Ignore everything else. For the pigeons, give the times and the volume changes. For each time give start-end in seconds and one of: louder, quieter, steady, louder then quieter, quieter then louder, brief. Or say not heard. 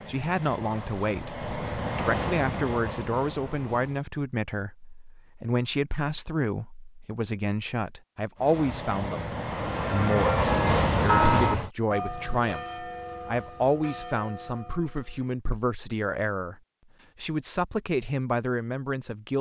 not heard.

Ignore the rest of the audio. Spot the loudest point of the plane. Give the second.
11 s.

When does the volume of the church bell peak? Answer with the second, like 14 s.
11 s.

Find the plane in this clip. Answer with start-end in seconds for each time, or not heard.
0.0-4.0, 8.3-11.7.